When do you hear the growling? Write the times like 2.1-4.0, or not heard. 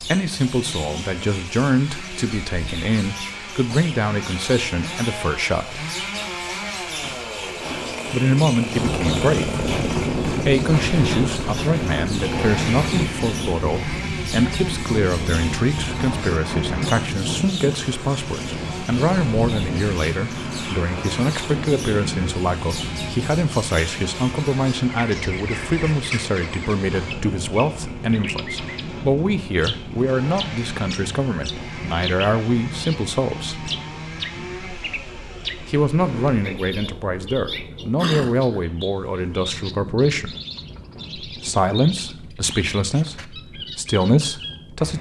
38.0-38.6.